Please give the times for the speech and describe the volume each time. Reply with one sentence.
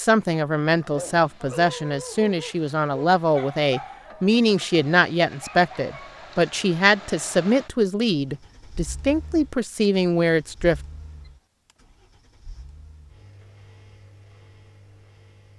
The speech can be heard from 0.0 to 10.8 s, at a steady volume.